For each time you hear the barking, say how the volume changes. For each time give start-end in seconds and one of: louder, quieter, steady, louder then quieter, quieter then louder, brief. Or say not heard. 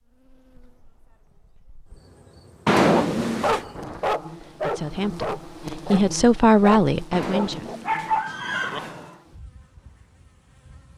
2.9-8.8 quieter then louder.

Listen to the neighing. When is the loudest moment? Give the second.
3 s.